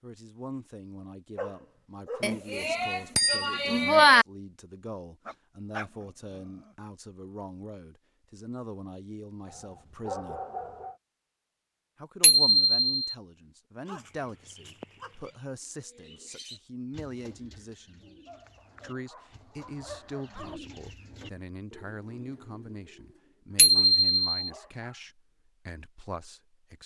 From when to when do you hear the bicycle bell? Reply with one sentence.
You can hear the bicycle bell from 2.2 to 4.2 s, from 12.2 to 13.1 s and from 23.6 to 24.2 s.